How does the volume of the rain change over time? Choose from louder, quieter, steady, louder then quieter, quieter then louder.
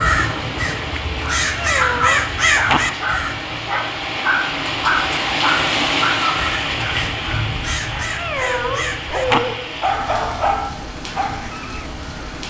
louder then quieter.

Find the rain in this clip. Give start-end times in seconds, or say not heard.
0.0-12.4.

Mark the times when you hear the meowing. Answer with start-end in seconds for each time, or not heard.
1.6-2.8, 8.2-9.4.